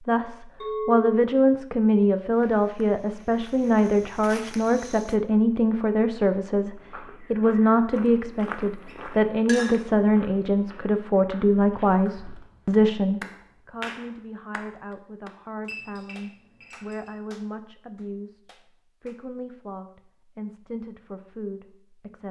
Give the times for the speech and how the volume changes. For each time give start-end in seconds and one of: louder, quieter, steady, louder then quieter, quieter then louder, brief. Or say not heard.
0.1-22.2 quieter.